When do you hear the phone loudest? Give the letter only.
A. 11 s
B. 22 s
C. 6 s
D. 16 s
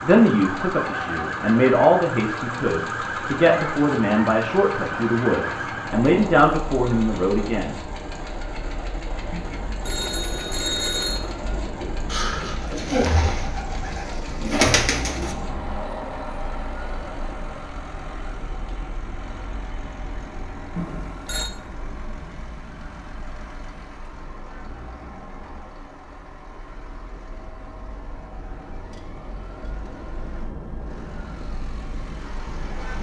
A.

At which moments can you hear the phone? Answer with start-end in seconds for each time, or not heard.
9.3-11.2, 20.8-21.5.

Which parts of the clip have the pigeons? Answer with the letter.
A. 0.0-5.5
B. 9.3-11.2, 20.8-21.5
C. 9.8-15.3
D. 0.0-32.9
C.